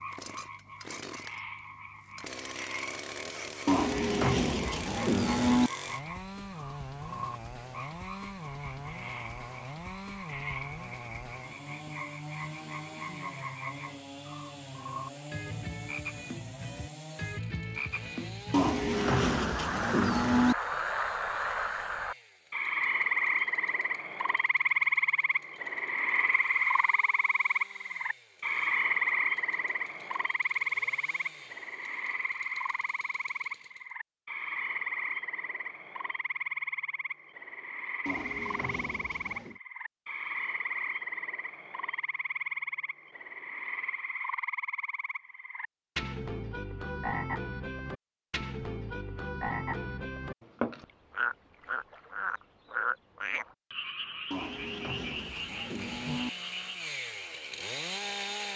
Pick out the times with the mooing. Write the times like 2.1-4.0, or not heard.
3.6-5.7, 18.5-20.6, 38.0-39.6, 54.3-56.3.